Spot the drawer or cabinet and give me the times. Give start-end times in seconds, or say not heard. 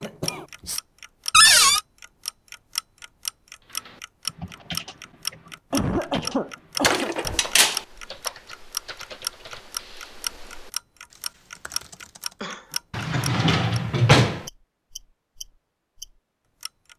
1.3-1.8, 6.8-7.8, 12.9-14.4.